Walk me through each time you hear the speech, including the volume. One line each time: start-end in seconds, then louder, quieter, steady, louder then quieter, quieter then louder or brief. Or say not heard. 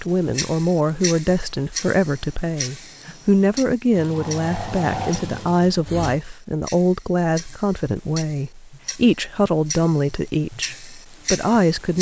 0.0-11.9 steady.